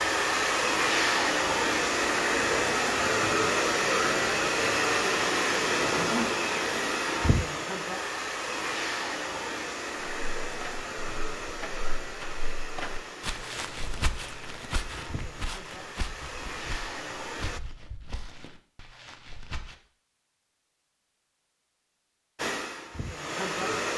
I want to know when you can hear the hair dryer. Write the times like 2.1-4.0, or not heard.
0.0-17.6, 22.4-23.9.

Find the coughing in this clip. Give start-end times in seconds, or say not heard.
not heard.